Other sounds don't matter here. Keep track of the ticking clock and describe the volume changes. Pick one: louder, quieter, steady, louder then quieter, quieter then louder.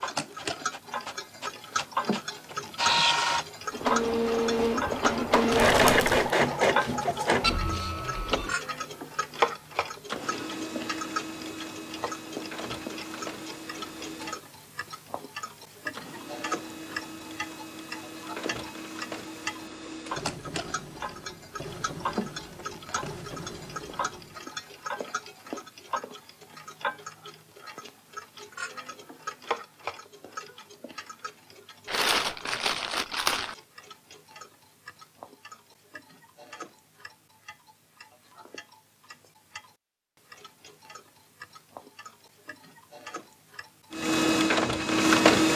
quieter.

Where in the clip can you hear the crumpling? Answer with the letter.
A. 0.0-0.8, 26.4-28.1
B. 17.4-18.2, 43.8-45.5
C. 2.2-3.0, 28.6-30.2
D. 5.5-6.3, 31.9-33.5
D.